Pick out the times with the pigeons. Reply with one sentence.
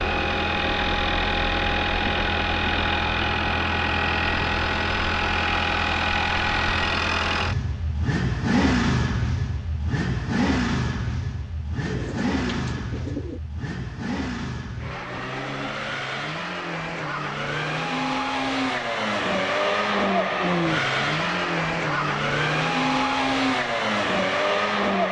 The pigeons can be heard from 11.8 to 13.4 s.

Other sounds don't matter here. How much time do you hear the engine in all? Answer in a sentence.
You can hear the engine for 25 seconds altogether.